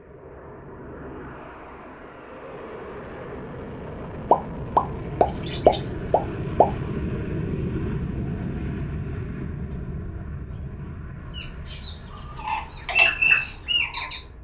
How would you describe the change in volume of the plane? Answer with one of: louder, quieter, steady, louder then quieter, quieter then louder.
louder then quieter.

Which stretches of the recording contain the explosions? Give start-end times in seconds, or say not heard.
4.3-6.7.